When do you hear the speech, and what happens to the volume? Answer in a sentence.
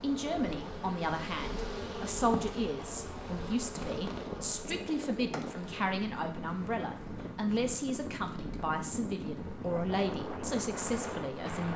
The speech can be heard from 0.0 to 11.7 s, at a steady volume.